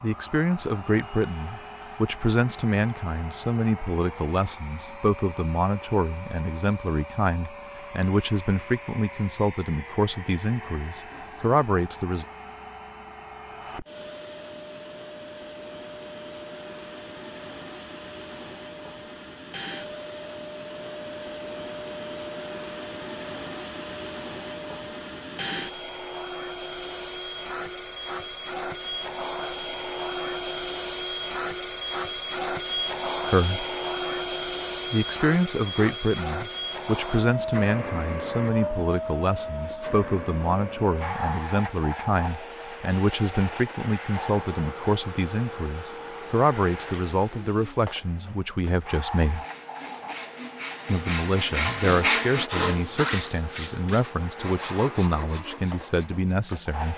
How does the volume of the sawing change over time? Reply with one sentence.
The loudness of the sawing goes up, then down.